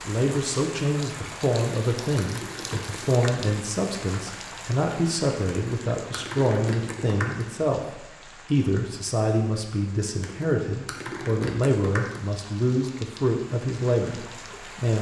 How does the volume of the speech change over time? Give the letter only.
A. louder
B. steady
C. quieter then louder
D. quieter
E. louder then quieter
B.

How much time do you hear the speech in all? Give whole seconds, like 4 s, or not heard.
15 s.